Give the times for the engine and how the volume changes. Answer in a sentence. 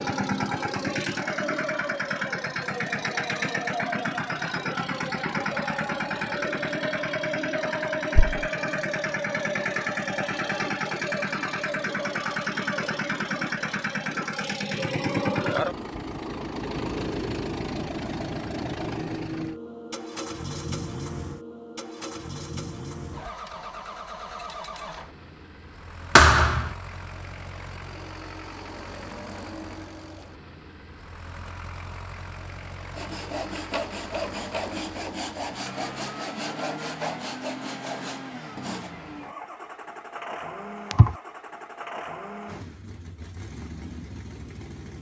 The engine can be heard from 0.0 to 44.9 s, getting quieter.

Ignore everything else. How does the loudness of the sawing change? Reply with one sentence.
The volume of the sawing stays about the same.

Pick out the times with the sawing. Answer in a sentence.
The sawing can be heard from 32.9 to 38.9 s.